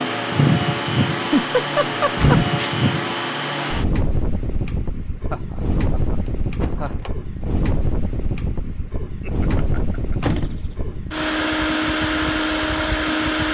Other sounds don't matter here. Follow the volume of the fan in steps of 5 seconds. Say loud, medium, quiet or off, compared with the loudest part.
loud, medium, loud.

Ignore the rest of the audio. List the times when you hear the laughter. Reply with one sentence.
The laughter can be heard from 1.1 to 2.8 s, from 5.3 to 7.1 s and from 9.1 to 10.3 s.